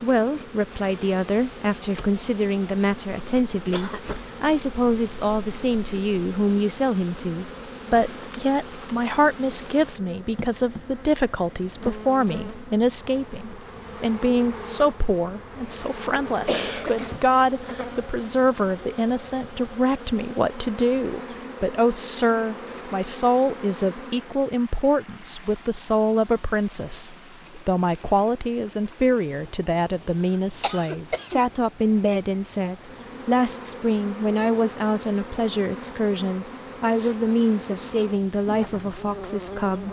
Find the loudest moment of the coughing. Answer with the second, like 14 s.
17 s.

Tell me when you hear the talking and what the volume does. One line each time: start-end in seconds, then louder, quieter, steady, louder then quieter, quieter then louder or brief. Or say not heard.
0.0-39.8 steady.